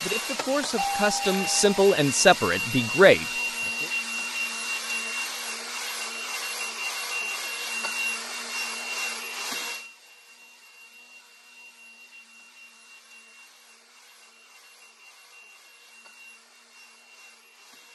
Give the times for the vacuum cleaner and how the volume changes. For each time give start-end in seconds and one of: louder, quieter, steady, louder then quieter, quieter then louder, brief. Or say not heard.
0.0-17.8 quieter.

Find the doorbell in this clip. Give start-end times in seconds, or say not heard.
0.8-1.8.